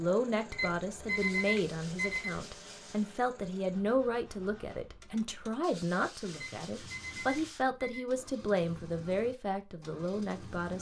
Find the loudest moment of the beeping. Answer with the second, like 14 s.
1 s.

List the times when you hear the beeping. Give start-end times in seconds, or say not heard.
0.5-2.3, 6.3-8.1.